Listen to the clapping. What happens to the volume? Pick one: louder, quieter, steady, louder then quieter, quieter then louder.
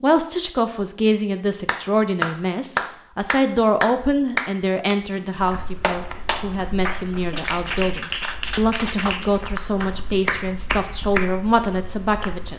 quieter.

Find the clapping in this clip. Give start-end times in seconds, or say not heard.
1.6-11.4.